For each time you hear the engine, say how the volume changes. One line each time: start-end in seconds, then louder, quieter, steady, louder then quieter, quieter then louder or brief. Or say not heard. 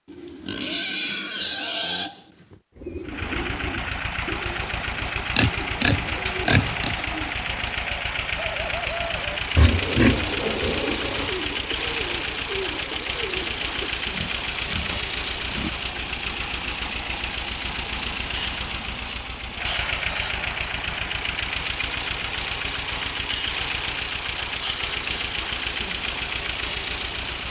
3.0-27.4 steady.